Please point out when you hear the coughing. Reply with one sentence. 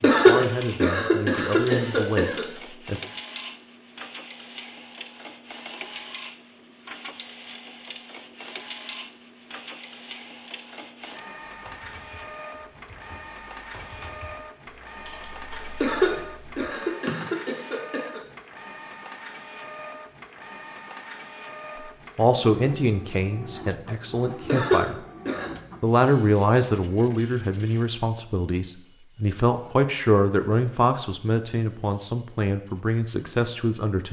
You can hear the coughing from 0.0 to 2.5 s, from 15.8 to 18.2 s and from 24.4 to 25.5 s.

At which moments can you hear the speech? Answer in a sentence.
The speech can be heard from 0.0 to 3.0 s, from 22.1 to 24.9 s and from 25.8 to 34.0 s.